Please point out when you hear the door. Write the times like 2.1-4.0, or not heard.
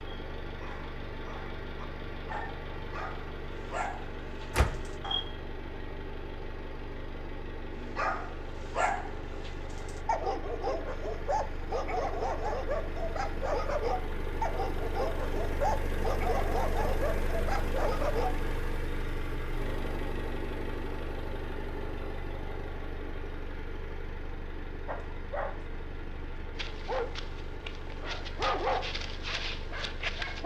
4.5-5.0.